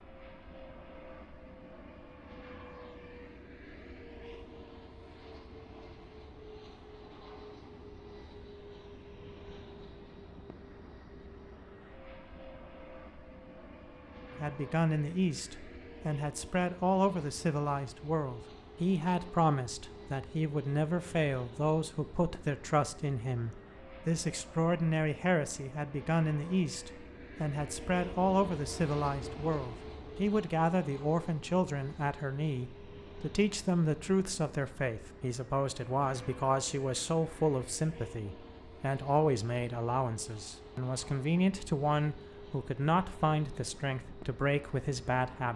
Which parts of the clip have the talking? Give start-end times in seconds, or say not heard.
14.3-45.5.